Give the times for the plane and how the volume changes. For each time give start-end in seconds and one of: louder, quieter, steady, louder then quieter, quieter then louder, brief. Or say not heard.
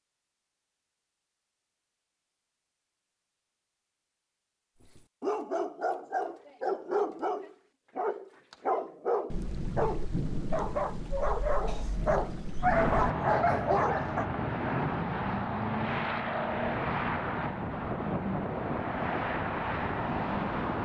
12.7-20.8 steady.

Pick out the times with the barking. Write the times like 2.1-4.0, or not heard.
5.0-14.2.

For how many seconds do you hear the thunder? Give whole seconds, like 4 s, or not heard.
4 s.